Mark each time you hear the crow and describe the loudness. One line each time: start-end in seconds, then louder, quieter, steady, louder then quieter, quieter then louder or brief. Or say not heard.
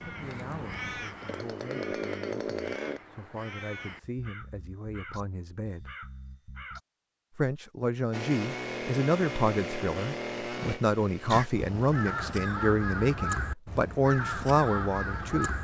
0.0-6.8 quieter
11.2-15.6 steady.